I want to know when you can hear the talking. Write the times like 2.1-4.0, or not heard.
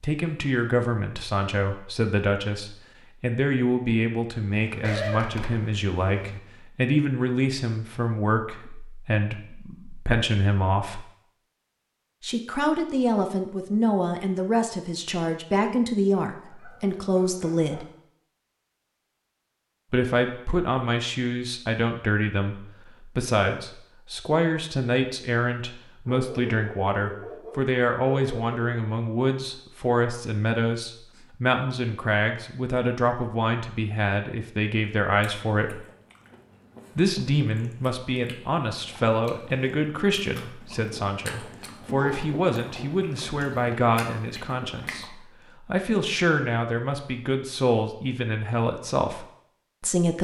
0.0-11.1, 12.2-17.9, 19.9-35.8, 37.0-50.1.